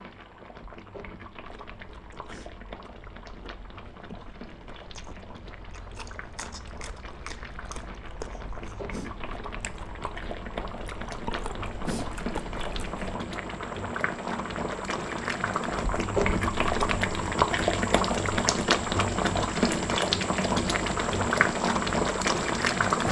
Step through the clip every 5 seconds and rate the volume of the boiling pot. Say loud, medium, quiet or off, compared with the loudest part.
quiet, quiet, medium, loud, loud.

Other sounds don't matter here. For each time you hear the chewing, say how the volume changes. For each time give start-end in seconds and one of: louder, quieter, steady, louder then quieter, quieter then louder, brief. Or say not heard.
1.4-13.2 louder.